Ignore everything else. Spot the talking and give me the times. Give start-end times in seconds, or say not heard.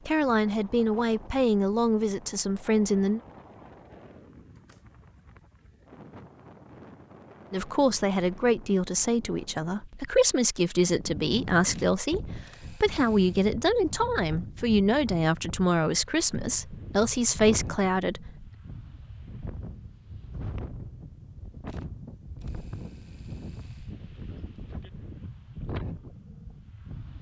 0.1-3.2, 7.5-18.4.